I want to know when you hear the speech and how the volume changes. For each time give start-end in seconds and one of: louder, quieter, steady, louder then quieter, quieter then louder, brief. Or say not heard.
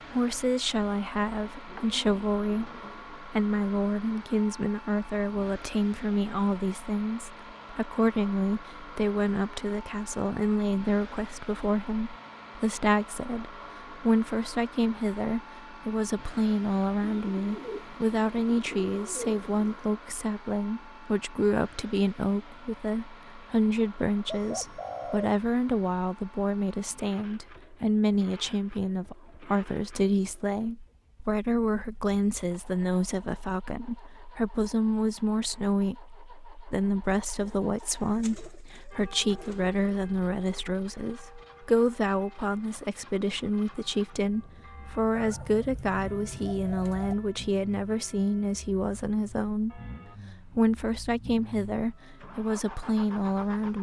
0.1-53.7 steady.